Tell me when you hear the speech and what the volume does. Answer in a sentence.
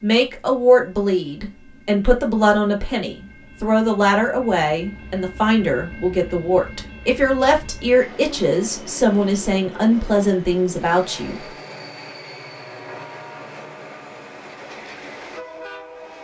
The speech can be heard from 0.0 to 11.5 s, at a steady volume.